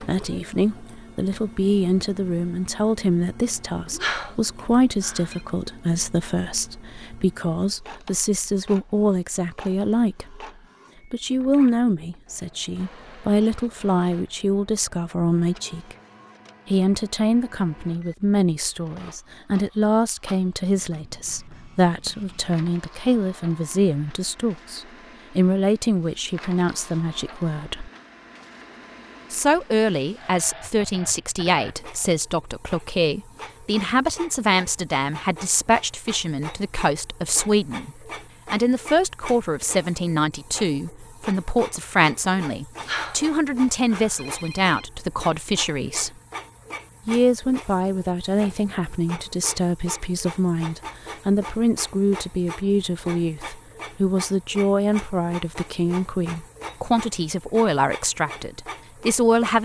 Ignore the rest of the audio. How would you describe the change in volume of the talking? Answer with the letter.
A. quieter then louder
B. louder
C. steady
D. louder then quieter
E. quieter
C.